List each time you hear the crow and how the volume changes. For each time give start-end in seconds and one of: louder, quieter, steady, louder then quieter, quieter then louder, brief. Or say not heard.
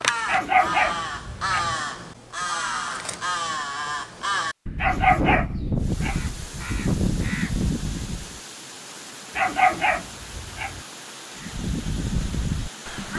0.0-8.4 steady
11.3-13.1 brief.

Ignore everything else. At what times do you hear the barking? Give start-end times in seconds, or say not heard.
0.2-1.8, 4.8-6.2, 9.3-10.8.